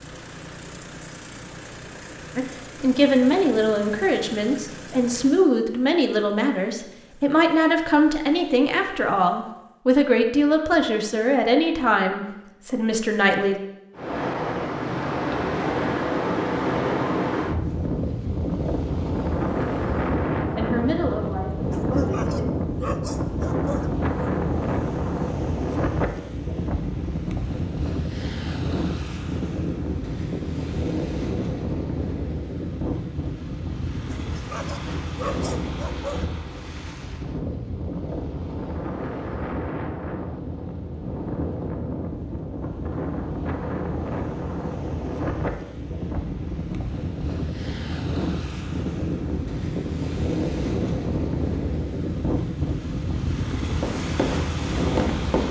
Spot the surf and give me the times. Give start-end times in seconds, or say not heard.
13.9-55.4.